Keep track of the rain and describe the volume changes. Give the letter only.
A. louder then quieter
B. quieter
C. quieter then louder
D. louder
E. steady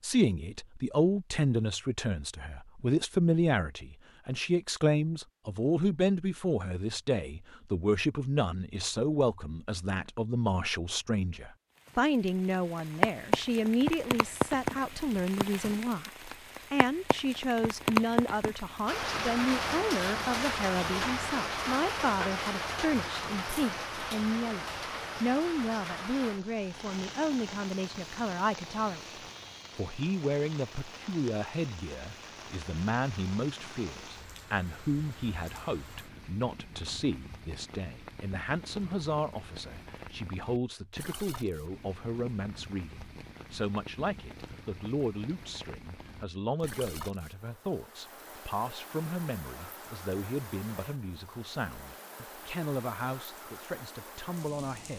B.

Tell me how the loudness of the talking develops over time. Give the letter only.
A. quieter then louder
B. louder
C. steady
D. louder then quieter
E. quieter
E.